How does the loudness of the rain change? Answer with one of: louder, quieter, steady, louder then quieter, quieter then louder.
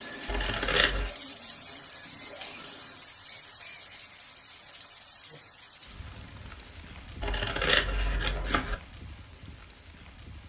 quieter.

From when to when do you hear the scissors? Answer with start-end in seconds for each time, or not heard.
0.2-1.1, 7.2-8.8.